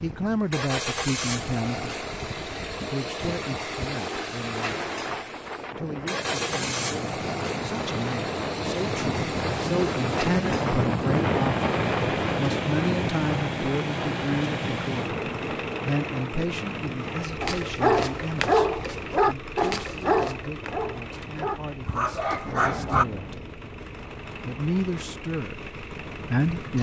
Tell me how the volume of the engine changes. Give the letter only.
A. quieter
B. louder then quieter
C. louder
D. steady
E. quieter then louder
A.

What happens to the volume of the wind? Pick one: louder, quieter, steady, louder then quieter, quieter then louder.
louder then quieter.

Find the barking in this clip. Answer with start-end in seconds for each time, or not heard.
17.4-23.1.